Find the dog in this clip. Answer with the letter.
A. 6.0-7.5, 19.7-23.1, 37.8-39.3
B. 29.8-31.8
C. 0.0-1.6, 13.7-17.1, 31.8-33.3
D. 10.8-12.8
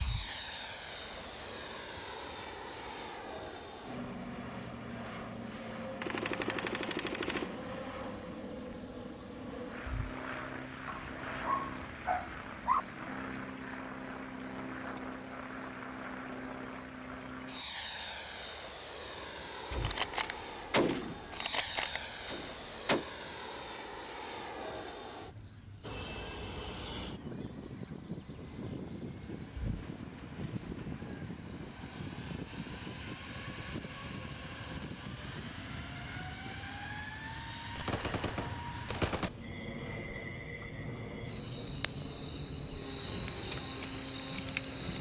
D.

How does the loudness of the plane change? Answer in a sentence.
The loudness of the plane stays about the same.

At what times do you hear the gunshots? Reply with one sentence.
You can hear the gunshots from 6.0 to 7.5 s, from 19.7 to 23.1 s and from 37.8 to 39.3 s.